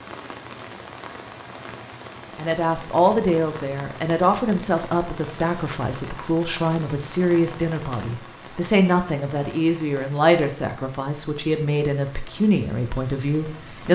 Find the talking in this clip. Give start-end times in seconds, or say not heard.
2.4-13.8.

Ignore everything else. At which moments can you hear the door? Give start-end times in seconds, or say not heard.
not heard.